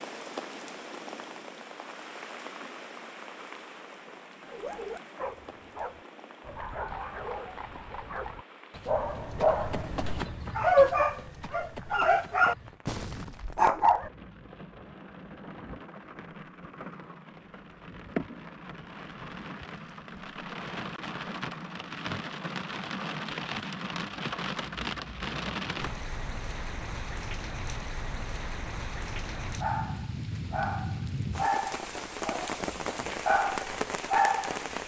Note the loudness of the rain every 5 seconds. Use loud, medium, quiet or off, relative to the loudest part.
medium, quiet, quiet, medium, loud, loud, loud.